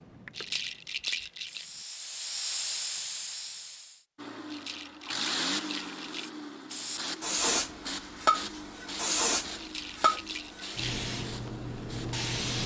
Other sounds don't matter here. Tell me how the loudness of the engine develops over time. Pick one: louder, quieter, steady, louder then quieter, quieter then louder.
quieter.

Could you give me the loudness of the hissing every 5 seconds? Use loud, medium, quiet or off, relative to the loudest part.
medium, loud, loud.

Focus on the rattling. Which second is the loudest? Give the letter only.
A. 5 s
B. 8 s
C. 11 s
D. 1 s
D.